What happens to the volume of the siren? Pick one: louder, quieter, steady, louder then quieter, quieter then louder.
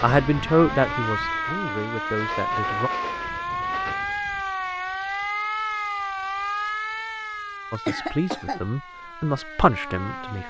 quieter.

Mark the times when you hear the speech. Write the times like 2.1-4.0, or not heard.
0.0-2.9, 7.7-10.4.